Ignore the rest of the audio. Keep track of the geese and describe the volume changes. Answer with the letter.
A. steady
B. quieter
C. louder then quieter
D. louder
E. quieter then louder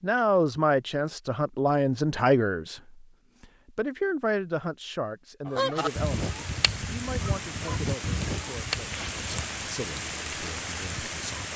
B.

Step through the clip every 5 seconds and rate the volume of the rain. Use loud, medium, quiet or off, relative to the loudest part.
off, loud, loud.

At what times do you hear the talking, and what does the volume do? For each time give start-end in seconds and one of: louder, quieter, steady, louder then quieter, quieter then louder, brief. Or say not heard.
0.0-11.5 quieter.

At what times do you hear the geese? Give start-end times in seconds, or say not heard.
5.5-11.5.